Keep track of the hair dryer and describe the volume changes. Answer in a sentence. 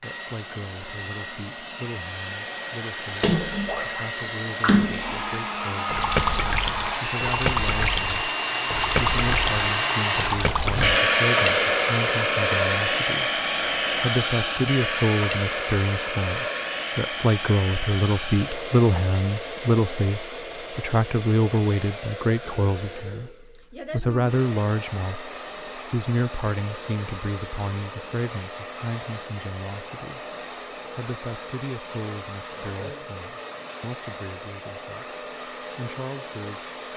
The loudness of the hair dryer goes up, then down.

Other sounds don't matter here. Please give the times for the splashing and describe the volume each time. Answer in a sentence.
The splashing can be heard from 3.1 to 11.0 s, at a steady volume.